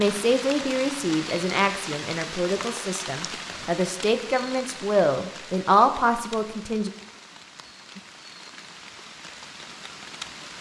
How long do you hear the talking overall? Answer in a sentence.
The talking can be heard for 7 seconds in total.